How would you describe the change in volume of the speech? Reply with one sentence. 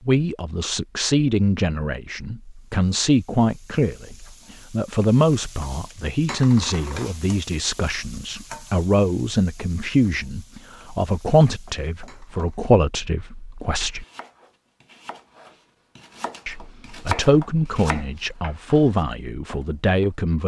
The volume of the speech stays about the same.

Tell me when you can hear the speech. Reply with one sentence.
You can hear the speech from 0.1 to 14.1 s and from 16.4 to 20.4 s.